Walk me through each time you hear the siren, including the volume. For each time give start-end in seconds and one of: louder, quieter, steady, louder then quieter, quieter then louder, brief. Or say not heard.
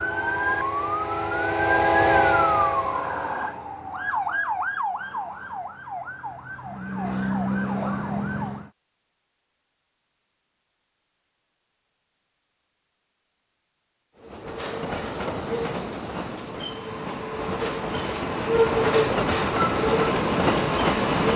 0.0-8.7 quieter then louder.